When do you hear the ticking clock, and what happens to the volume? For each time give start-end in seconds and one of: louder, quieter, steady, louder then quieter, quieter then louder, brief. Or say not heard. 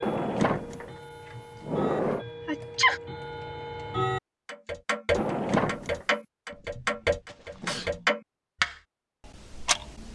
0.0-10.1 louder.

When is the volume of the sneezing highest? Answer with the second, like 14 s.
3 s.